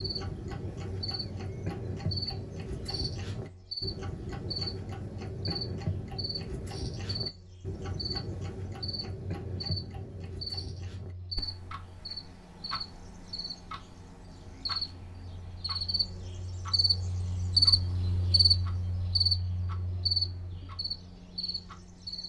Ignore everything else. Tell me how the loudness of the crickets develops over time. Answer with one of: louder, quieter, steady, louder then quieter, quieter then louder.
louder.